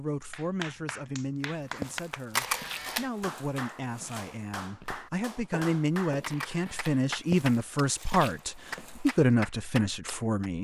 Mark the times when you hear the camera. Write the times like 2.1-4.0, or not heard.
2.3-3.1, 6.2-7.0.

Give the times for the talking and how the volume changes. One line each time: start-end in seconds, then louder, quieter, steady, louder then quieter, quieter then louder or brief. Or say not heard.
0.0-10.5 louder.